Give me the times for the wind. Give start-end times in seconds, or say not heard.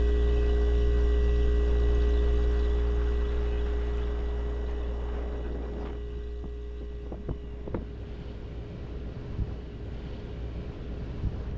0.0-11.5.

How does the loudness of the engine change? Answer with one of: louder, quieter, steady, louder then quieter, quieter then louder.
quieter.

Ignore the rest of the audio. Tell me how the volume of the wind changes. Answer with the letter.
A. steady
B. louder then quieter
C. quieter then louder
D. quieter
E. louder
E.